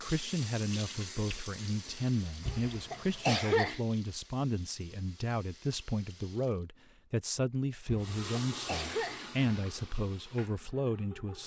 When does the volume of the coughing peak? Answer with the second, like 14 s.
3 s.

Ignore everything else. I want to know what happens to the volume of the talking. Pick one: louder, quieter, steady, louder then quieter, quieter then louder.
steady.